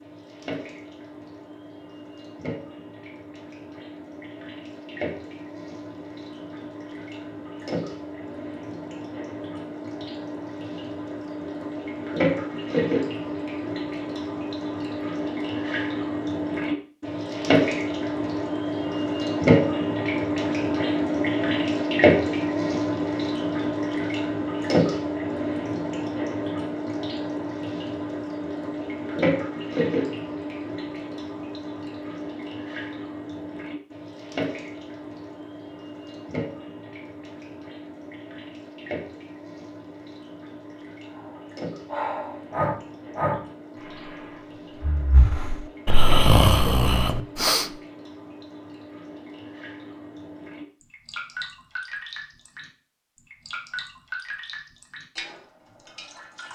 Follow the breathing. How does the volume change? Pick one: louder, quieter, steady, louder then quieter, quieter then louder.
quieter then louder.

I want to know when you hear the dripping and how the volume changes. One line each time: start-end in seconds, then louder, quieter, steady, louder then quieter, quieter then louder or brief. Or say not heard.
0.0-56.5 louder then quieter.